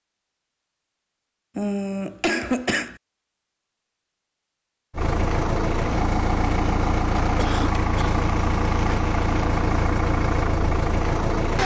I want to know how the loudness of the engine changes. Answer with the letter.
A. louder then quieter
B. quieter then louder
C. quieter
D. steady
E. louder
D.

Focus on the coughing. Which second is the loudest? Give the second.
2 s.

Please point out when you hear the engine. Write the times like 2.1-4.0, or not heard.
4.9-11.6.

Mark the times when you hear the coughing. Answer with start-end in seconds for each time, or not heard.
1.6-3.0, 7.3-8.2.